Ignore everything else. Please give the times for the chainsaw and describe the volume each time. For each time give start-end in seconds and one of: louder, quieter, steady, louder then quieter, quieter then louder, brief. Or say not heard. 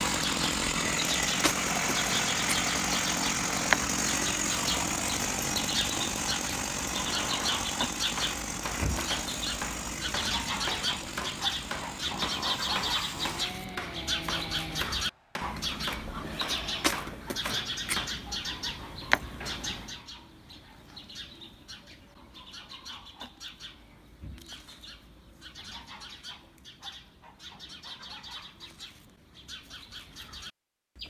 0.0-14.9 quieter.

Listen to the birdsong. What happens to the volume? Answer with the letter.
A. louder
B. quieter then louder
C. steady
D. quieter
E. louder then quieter
D.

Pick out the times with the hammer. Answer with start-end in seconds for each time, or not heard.
6.8-18.1.